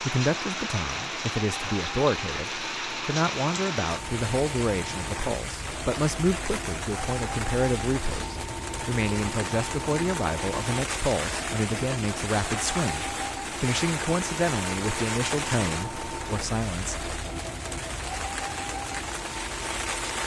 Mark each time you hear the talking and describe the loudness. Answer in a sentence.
The talking can be heard from 0.0 to 17.1 s, at a steady volume.